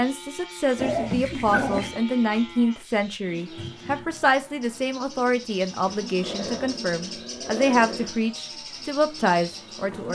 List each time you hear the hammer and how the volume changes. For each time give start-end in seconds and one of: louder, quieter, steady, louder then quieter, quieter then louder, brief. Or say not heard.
not heard.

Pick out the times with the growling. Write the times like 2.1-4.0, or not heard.
0.8-2.0, 6.2-8.2.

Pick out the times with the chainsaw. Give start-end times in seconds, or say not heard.
not heard.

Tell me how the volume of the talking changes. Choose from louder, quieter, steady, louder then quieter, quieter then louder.
steady.